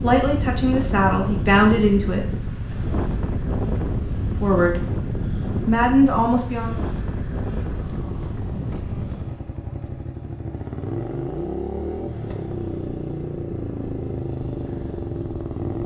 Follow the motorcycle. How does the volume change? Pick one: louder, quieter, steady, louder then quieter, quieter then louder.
louder.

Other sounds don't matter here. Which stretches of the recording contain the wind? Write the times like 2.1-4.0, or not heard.
0.0-9.6.